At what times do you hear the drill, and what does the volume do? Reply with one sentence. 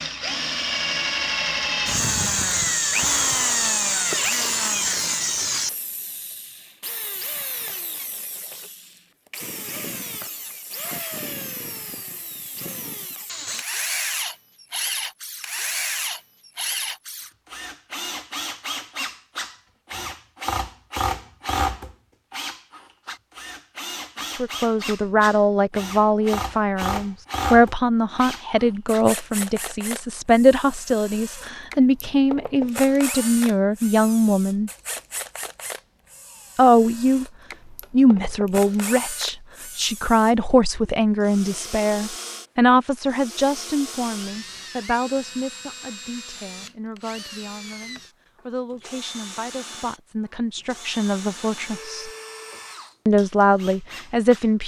You can hear the drill from 0.0 to 54.5 s, getting quieter.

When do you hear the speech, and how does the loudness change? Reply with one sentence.
The speech can be heard from 24.2 to 34.7 s, at a steady volume; briefly from 36.5 to 37.2 s; from 37.9 to 52.1 s, getting quieter then louder; and briefly from 53.0 to 54.6 s.